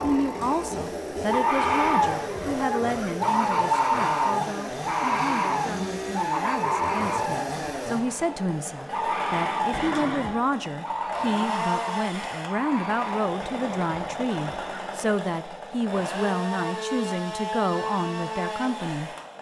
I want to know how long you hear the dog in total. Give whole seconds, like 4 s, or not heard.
not heard.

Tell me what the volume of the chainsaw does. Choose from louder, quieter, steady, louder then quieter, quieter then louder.
steady.